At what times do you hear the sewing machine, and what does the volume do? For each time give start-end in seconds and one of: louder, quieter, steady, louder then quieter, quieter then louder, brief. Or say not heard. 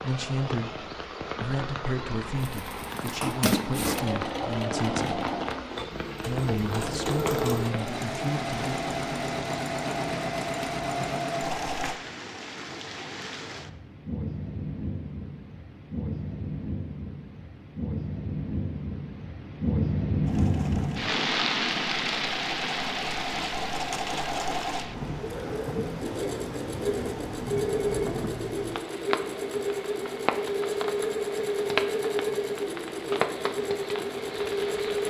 2.4-11.9 steady
20.2-35.0 louder.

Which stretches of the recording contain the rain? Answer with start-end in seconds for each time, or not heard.
0.0-35.0.